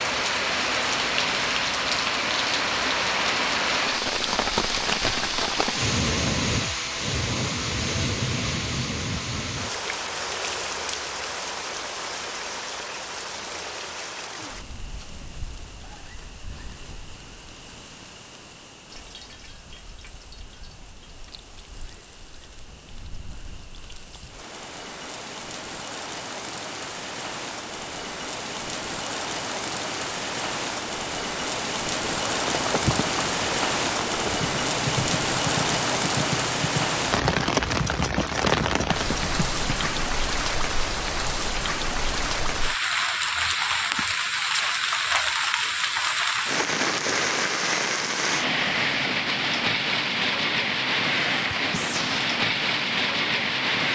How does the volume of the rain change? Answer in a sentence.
The volume of the rain goes down, then up.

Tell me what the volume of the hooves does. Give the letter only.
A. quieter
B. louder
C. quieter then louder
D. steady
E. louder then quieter
D.